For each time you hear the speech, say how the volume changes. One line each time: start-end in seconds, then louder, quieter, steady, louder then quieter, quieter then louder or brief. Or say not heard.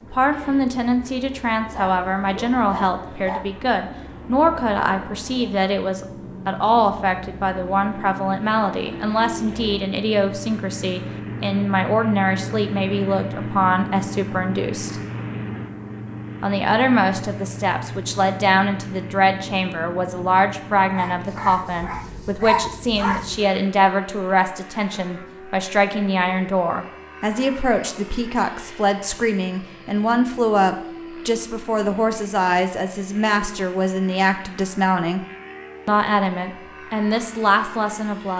0.0-14.9 steady
16.4-35.2 steady
35.9-38.3 brief.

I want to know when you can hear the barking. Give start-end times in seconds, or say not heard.
1.7-3.5, 20.9-23.2.